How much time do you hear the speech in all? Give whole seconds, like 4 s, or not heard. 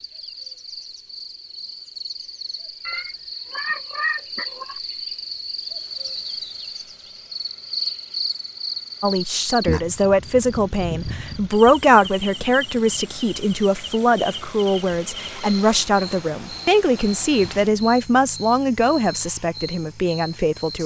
12 s.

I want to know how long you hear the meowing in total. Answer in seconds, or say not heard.
2 s.